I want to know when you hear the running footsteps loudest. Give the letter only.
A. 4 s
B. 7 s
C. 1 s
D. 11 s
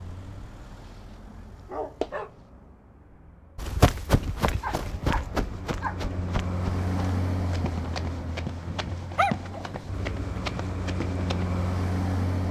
A.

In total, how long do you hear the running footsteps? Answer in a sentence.
The running footsteps can be heard for 8 seconds in total.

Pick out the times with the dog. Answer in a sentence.
You can hear the dog from 1.7 to 2.3 s, from 4.6 to 6.2 s and from 8.7 to 9.7 s.